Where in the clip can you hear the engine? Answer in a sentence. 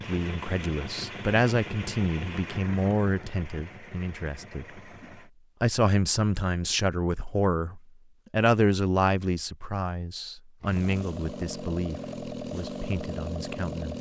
The engine can be heard from 0.0 to 5.3 s and from 10.6 to 13.9 s.